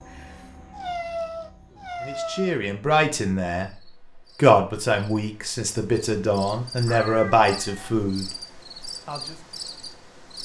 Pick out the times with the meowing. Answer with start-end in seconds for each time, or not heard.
0.7-2.5, 6.8-8.0.